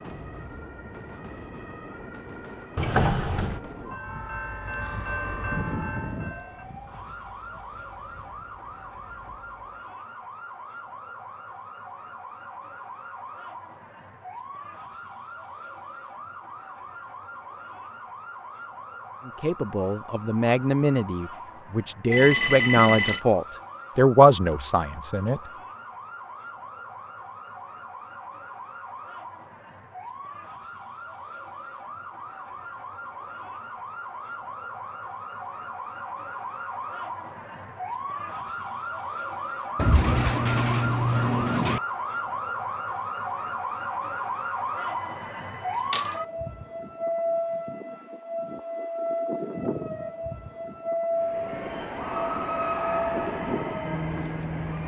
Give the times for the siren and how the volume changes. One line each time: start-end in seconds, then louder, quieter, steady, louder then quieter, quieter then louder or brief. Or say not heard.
0.0-54.8 louder.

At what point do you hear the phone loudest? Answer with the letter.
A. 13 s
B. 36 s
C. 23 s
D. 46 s
C.